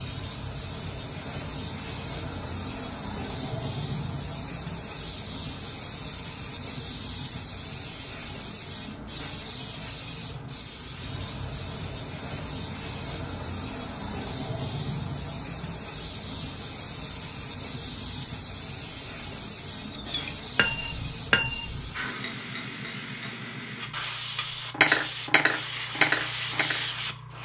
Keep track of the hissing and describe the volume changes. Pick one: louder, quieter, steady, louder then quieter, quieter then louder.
steady.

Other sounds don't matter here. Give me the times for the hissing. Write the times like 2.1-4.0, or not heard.
0.0-27.4.